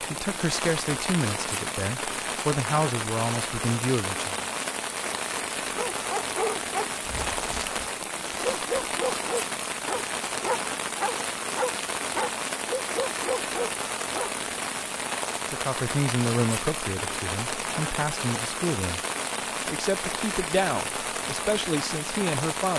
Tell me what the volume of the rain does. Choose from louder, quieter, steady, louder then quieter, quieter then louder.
steady.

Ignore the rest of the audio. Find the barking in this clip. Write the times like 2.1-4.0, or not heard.
5.8-14.3.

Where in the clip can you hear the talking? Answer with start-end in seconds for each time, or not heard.
0.0-4.5, 15.4-19.0, 19.6-22.7.